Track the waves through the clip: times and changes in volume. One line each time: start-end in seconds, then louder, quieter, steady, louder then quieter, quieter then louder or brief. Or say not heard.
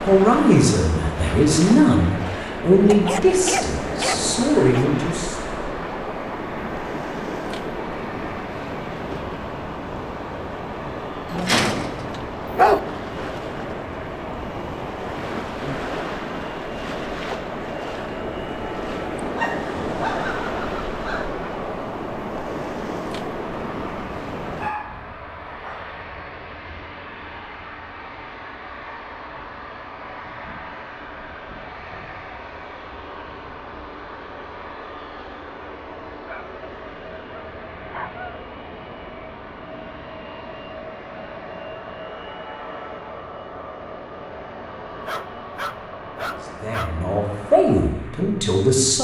0.0-24.8 steady.